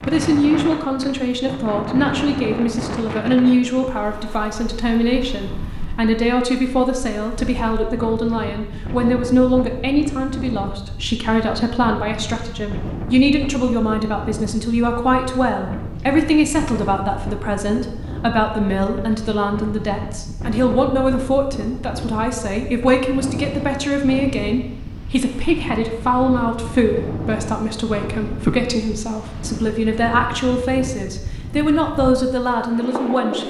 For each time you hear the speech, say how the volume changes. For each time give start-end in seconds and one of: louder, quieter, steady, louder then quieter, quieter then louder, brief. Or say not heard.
0.1-33.4 steady.